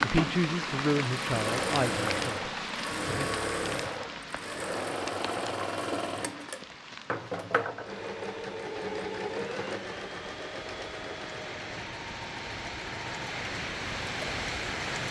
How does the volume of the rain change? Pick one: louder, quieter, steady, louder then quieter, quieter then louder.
quieter then louder.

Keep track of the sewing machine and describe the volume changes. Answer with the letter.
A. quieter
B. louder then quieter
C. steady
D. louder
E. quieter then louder
A.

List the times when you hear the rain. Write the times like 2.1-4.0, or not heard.
0.0-15.0.